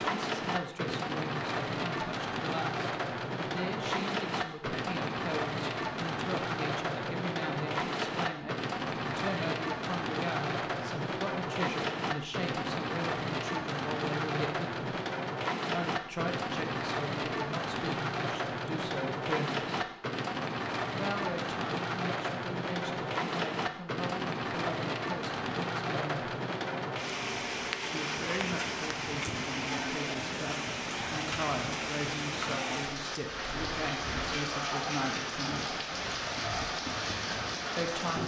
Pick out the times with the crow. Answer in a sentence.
You can't hear the crow here.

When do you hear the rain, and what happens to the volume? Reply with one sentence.
You can hear the rain from 0.0 to 38.2 s, at a steady volume.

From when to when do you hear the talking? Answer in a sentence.
You can hear the talking from 0.1 to 14.9 s, from 15.7 to 19.7 s, from 20.9 to 26.3 s, from 27.9 to 35.8 s and from 37.8 to 38.2 s.